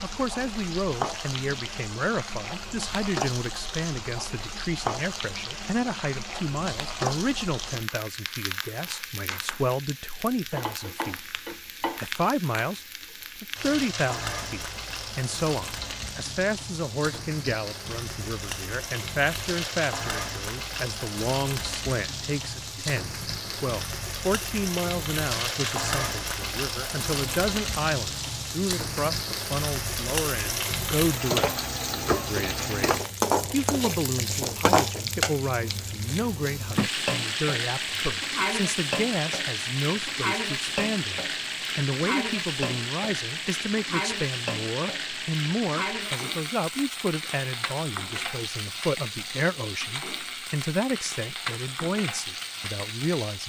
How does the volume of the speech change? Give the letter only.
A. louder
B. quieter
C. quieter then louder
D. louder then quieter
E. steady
E.